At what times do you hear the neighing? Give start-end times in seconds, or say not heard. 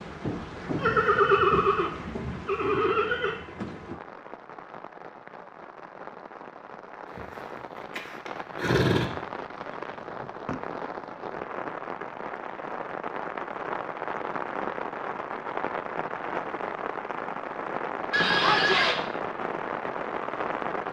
0.8-3.4, 8.0-9.1, 18.1-18.9.